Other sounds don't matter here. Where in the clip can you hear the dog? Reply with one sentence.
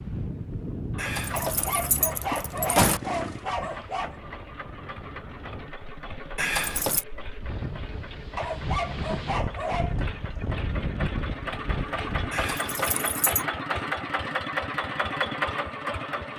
You can hear the dog from 1.3 to 4.2 s and from 8.3 to 10.1 s.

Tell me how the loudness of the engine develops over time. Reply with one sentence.
The volume of the engine goes up.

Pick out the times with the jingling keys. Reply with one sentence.
The jingling keys can be heard from 0.9 to 3.0 s, from 6.3 to 7.0 s and from 12.3 to 13.4 s.